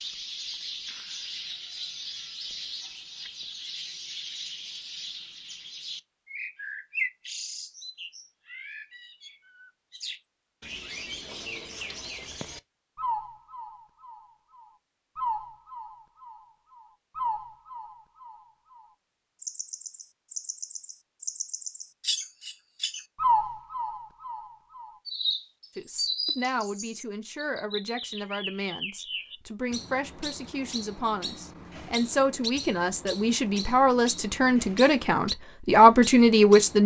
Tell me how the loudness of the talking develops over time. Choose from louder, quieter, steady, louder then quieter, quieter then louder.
louder.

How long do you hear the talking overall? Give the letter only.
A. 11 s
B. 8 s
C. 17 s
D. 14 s
A.